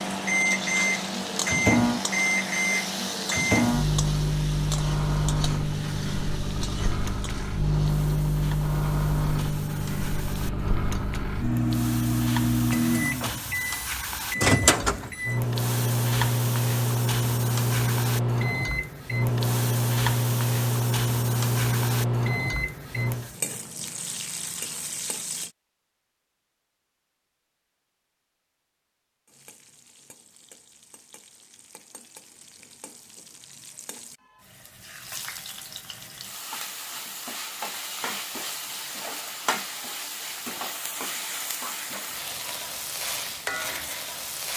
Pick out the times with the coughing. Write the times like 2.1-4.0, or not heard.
not heard.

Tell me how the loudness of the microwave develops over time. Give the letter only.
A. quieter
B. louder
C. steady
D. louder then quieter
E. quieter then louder
C.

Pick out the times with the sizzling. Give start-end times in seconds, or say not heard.
0.0-25.5, 29.2-44.5.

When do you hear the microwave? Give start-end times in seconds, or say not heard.
0.0-23.3.